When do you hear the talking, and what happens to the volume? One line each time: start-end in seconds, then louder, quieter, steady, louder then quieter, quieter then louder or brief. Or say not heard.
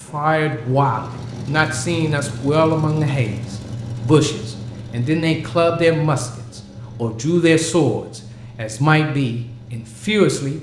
0.0-10.5 steady.